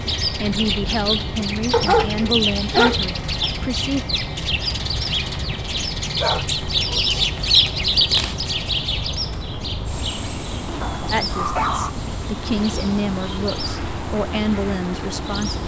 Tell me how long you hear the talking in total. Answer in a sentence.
The talking can be heard for 8 seconds in total.